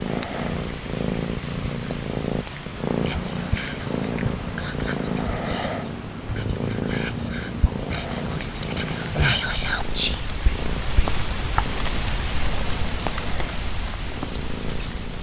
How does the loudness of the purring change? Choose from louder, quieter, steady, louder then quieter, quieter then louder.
quieter.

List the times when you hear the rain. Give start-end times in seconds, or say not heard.
0.0-15.1.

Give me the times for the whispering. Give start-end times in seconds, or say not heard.
3.0-11.2.